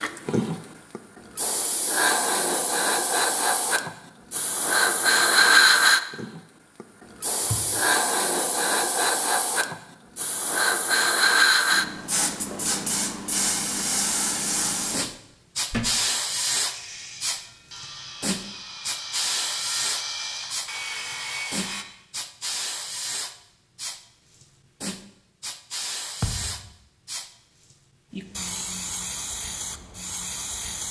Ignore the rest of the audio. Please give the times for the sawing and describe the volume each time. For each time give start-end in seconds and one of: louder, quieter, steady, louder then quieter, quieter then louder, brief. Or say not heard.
16.6-21.9 louder.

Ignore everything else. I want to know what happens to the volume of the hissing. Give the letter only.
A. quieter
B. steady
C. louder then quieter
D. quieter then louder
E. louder
A.